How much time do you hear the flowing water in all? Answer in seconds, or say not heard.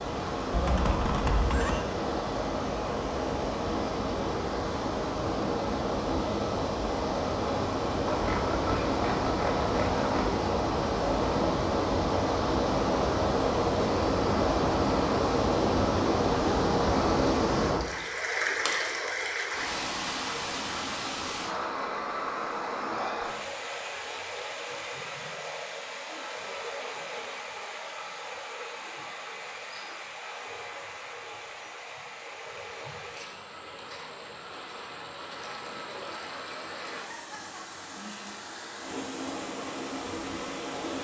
41 s.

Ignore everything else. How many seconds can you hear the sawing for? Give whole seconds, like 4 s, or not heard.
2 s.